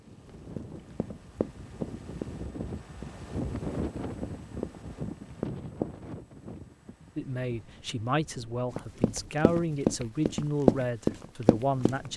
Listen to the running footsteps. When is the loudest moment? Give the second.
11 s.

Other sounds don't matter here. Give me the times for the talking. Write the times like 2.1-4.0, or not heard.
7.2-12.1.